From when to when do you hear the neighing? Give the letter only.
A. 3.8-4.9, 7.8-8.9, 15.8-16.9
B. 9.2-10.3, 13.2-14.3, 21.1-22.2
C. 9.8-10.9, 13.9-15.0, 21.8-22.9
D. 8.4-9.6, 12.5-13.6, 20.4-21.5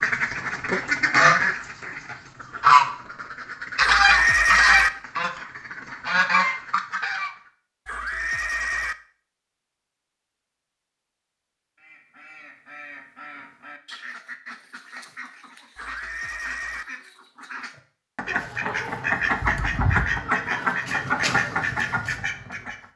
A.